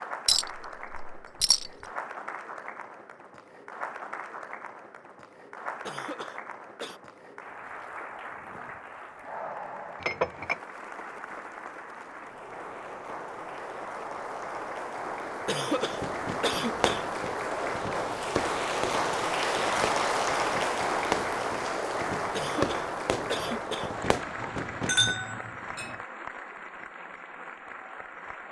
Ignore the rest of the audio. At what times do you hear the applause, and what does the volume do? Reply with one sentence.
You can hear the applause from 0.0 to 28.4 s, getting louder then quieter.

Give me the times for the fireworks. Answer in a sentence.
The fireworks can be heard from 15.9 to 25.1 s.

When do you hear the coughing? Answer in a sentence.
The coughing can be heard from 5.8 to 7.0 s, from 15.4 to 17.1 s and from 22.3 to 23.9 s.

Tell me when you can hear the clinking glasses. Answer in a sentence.
The clinking glasses can be heard from 0.2 to 1.7 s, from 10.0 to 10.6 s and from 24.4 to 25.9 s.